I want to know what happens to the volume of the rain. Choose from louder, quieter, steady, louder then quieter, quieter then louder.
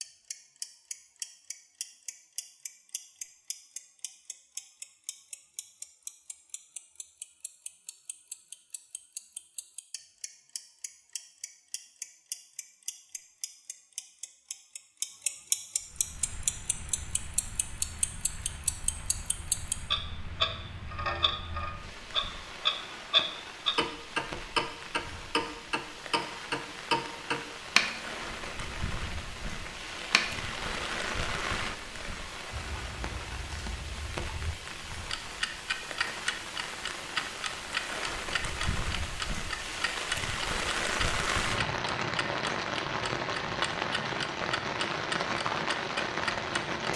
louder.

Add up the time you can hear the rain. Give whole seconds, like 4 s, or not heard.
31 s.